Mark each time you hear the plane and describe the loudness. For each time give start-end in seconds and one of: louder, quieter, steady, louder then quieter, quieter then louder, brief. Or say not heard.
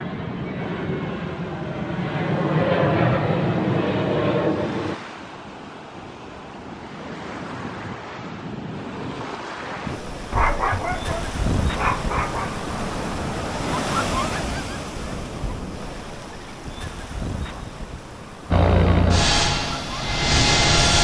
0.0-5.0 louder
18.5-20.9 brief.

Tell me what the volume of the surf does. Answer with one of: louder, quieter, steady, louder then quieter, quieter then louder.
louder then quieter.